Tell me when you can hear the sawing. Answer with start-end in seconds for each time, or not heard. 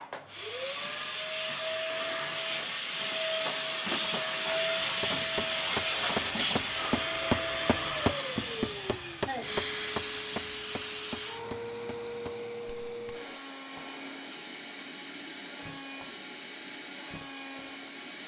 not heard.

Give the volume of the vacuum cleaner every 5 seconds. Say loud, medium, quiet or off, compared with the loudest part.
loud, loud, medium, medium.